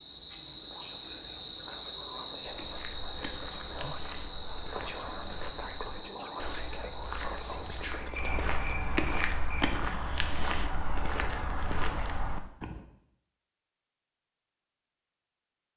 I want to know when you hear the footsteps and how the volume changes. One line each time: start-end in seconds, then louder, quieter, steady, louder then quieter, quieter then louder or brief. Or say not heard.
2.5-12.8 louder.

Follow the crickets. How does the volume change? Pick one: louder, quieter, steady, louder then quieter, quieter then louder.
quieter.